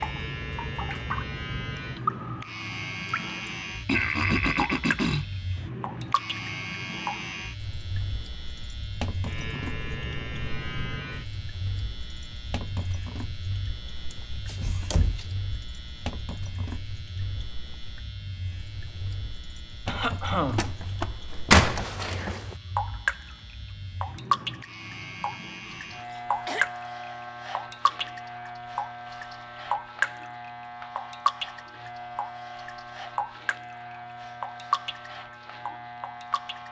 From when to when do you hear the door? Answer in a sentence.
You can hear the door from 14.1 to 15.2 s and from 20.6 to 22.4 s.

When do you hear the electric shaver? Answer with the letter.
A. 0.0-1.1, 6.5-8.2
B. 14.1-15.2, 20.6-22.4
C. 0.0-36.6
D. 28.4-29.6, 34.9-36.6
C.